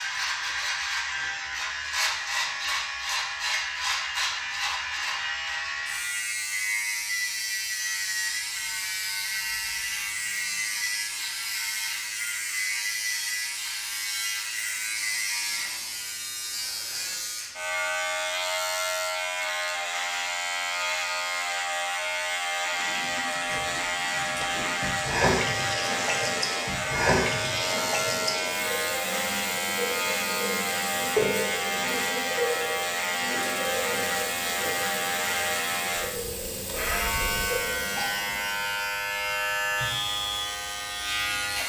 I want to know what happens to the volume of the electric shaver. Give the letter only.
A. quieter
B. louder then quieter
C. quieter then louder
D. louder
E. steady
E.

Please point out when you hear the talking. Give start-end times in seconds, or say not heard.
not heard.